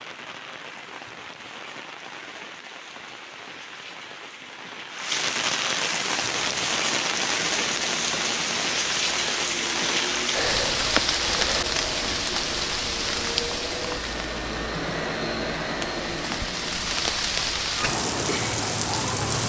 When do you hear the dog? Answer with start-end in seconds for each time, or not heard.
not heard.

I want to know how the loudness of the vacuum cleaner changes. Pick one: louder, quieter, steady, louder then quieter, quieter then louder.
louder.